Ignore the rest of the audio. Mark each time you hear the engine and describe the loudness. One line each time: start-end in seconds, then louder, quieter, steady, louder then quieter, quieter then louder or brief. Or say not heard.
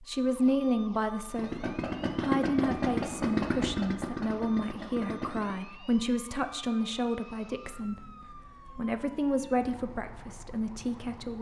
1.4-5.5 quieter.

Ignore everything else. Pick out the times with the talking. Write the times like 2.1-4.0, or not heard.
0.0-11.3.